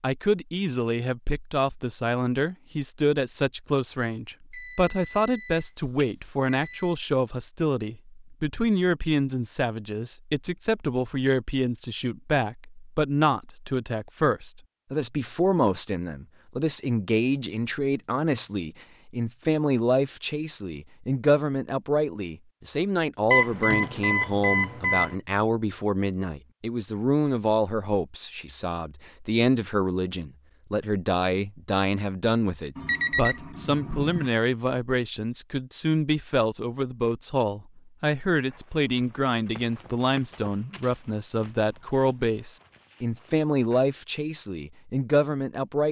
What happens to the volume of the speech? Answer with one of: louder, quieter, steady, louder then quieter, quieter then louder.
steady.